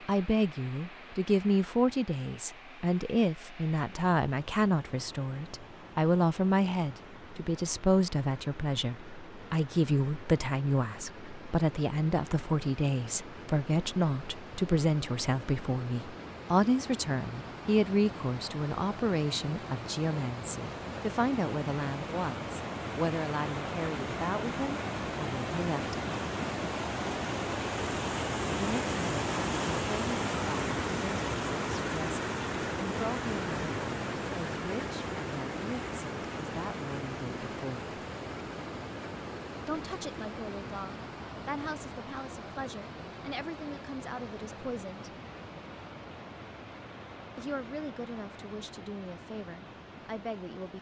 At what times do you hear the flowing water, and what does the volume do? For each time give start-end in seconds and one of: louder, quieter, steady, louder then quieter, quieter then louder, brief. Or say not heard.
0.0-50.7 louder then quieter.